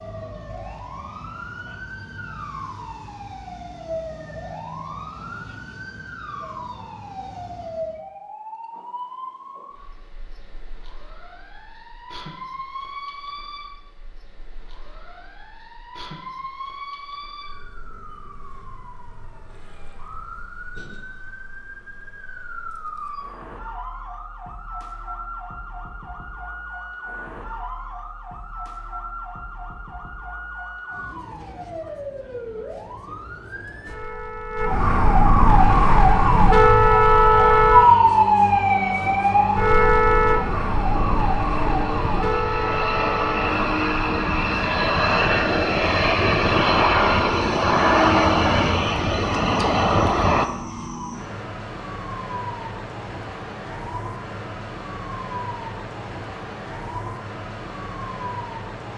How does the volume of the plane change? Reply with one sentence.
The volume of the plane goes up.